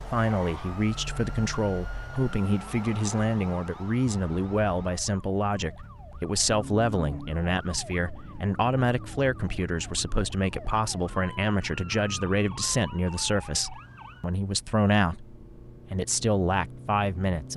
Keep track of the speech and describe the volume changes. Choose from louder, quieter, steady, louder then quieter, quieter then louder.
steady.